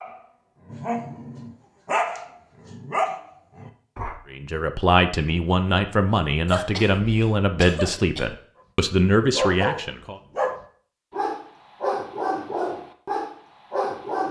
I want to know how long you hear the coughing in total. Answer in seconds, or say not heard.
2 s.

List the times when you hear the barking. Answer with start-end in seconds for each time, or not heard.
0.0-4.2, 9.2-14.2.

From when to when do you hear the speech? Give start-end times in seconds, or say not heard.
4.3-10.2.